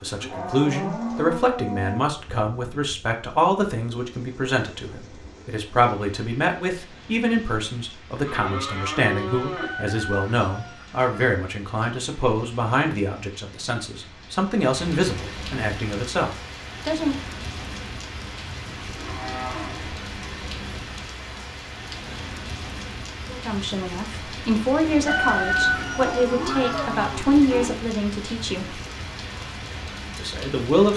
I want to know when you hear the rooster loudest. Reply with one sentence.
The volume of the rooster peaks at 26 seconds.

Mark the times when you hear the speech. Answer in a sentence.
You can hear the speech from 0.0 to 17.1 s, from 23.3 to 28.8 s and from 30.1 to 30.9 s.